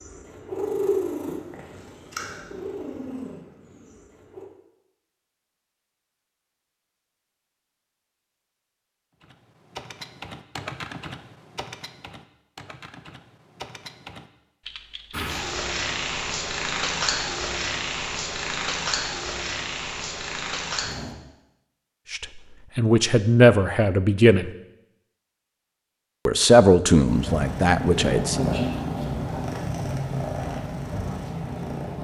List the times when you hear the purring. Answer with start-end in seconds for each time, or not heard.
0.0-4.5, 15.1-21.1, 27.1-31.9.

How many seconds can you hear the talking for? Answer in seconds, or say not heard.
5 s.